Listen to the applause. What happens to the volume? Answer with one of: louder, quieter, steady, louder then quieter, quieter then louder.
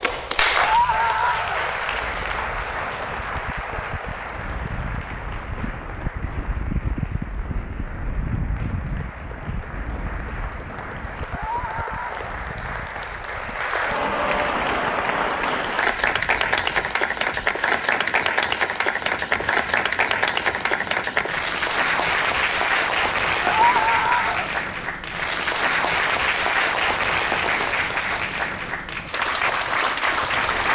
quieter then louder.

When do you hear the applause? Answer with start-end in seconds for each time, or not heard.
0.0-30.7.